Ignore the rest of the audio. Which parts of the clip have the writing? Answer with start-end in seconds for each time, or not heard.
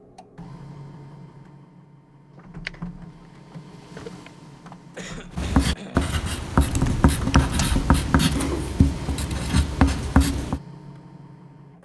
5.3-10.6.